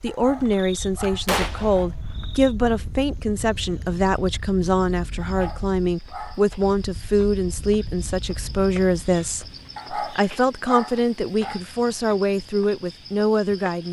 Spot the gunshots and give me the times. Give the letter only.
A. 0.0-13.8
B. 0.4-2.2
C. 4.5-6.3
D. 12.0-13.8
B.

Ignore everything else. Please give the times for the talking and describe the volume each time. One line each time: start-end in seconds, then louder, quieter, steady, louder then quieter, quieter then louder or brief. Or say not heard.
0.0-13.8 steady.